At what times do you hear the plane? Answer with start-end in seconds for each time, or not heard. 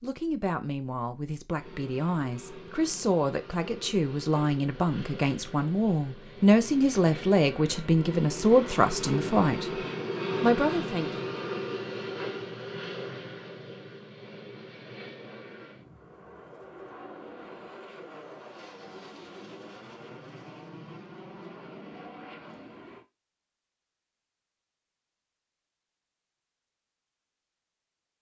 1.6-23.1.